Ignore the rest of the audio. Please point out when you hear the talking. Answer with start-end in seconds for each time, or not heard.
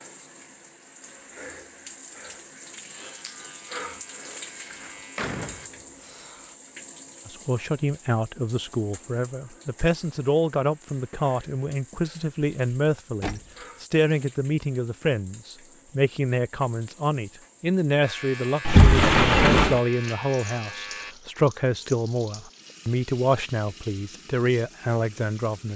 7.2-25.7.